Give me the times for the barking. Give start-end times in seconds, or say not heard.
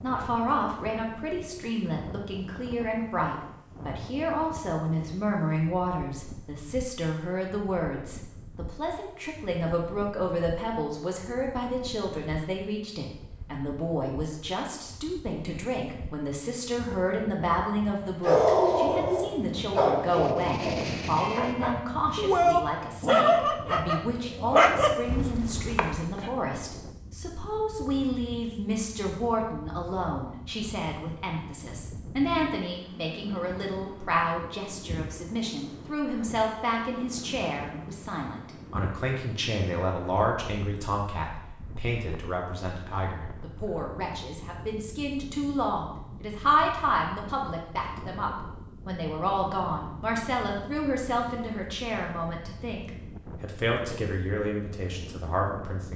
18.2-26.3.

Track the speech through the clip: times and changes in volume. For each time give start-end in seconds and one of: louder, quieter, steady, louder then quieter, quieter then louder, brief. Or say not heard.
0.0-55.9 steady.